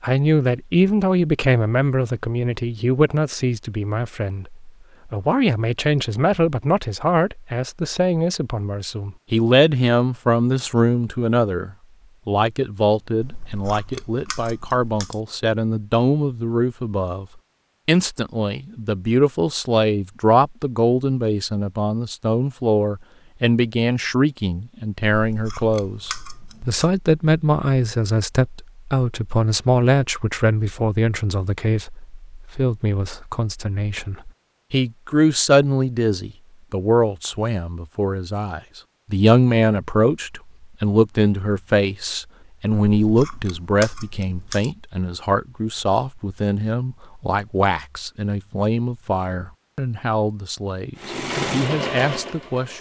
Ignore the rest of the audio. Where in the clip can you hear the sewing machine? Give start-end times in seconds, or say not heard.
51.0-52.7.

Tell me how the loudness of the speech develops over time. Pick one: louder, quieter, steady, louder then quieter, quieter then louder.
steady.